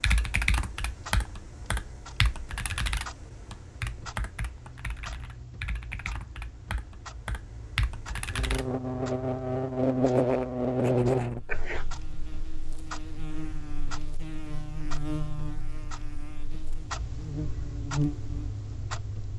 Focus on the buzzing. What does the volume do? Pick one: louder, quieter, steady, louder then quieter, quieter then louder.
quieter then louder.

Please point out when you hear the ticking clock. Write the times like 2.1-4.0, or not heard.
0.0-19.3.